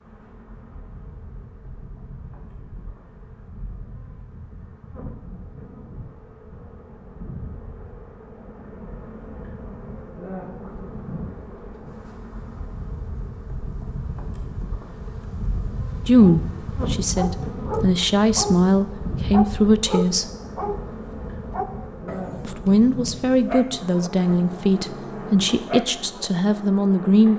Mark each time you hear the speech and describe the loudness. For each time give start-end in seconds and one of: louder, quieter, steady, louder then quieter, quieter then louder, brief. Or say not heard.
16.1-20.3 louder
22.4-27.3 steady.